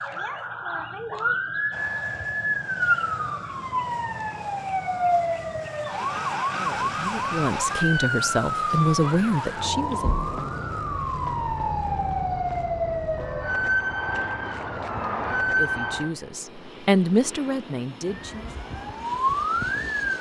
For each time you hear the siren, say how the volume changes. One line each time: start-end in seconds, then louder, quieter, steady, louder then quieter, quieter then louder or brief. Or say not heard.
0.0-16.1 steady
18.1-20.1 brief.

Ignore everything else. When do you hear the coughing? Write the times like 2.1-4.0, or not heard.
not heard.